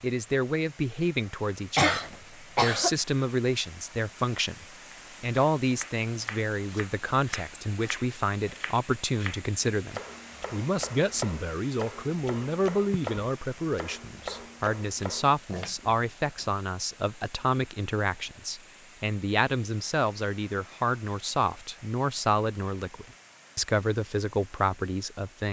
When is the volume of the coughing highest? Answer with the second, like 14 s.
2 s.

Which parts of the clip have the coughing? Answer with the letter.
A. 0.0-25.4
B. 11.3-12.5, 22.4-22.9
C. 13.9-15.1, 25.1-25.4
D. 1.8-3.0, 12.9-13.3
D.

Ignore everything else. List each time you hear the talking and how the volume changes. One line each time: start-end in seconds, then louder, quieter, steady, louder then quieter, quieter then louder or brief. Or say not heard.
0.0-25.4 steady.